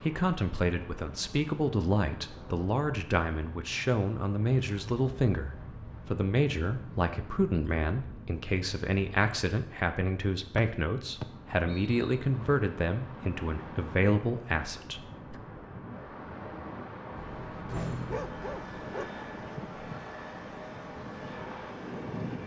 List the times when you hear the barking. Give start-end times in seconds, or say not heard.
17.1-19.1.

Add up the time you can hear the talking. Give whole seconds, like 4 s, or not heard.
15 s.